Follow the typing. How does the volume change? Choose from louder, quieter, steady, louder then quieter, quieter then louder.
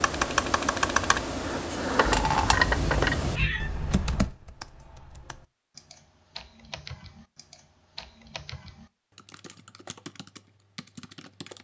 quieter.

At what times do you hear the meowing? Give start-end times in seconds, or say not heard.
2.0-3.7.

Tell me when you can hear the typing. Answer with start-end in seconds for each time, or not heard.
0.0-11.5.